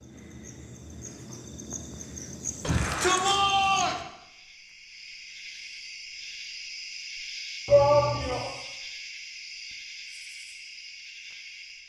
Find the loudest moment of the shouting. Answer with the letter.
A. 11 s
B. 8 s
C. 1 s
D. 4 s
B.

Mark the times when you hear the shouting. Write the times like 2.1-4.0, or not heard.
2.6-4.0, 7.7-8.5.